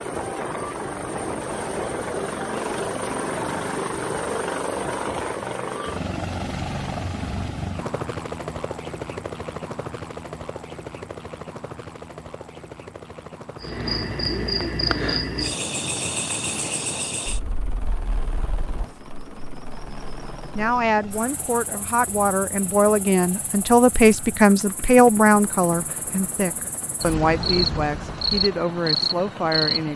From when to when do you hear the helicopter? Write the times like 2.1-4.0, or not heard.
0.0-29.9.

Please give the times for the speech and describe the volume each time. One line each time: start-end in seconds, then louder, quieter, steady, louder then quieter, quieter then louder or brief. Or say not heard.
20.6-29.9 louder then quieter.